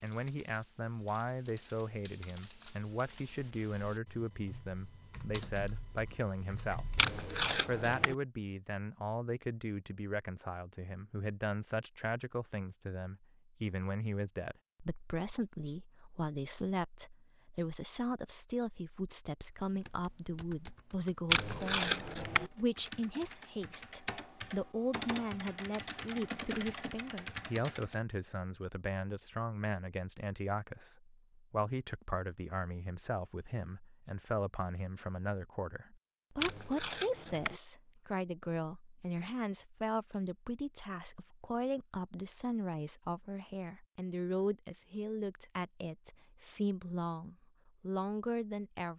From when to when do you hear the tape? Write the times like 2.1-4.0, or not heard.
7.0-8.2, 21.3-22.5, 36.4-37.6.